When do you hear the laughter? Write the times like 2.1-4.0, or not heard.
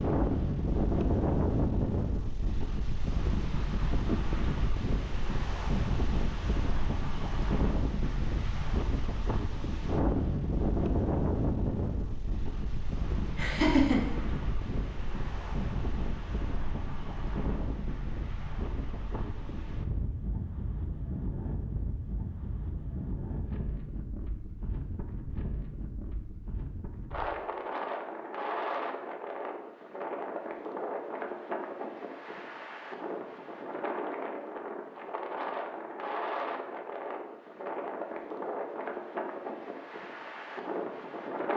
13.3-14.0.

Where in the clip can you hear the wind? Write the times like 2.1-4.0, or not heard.
0.0-41.5.